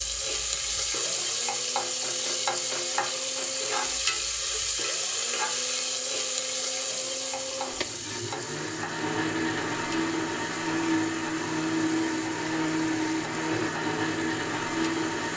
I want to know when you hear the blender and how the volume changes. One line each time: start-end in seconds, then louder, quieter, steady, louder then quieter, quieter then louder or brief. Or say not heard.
0.0-15.3 louder.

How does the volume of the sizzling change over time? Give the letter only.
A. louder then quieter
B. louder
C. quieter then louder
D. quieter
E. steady
D.